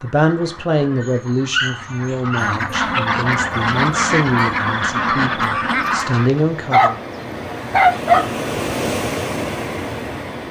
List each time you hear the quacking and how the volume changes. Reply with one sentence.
The quacking can be heard from 0.0 to 6.5 s, getting louder.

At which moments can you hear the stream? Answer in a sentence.
You can hear the stream from 3.3 to 10.4 s.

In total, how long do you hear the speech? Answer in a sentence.
You can hear the speech for 7 seconds altogether.